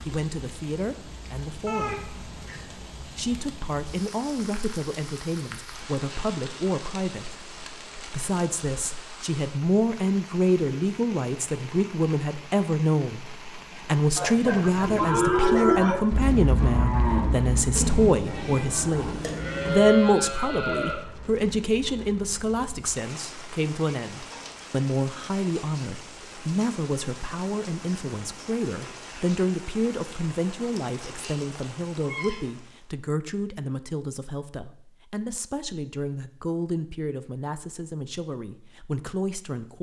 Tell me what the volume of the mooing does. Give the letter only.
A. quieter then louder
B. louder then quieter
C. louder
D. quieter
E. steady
A.